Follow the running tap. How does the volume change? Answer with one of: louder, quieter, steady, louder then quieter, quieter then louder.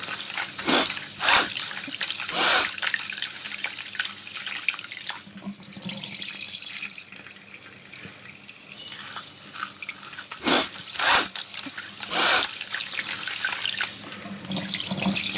quieter then louder.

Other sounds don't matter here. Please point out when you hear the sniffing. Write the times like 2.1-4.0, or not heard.
0.6-2.7, 10.4-12.5.